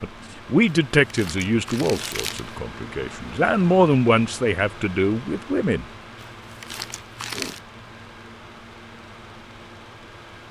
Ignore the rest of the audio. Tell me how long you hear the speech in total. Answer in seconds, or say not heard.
6 s.